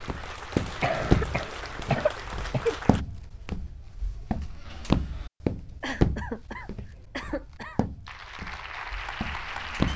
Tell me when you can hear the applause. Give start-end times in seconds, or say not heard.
0.0-3.0, 8.1-9.9.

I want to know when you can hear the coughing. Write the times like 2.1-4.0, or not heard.
0.8-2.8, 5.8-7.9.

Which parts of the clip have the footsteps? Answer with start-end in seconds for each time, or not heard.
0.0-9.9.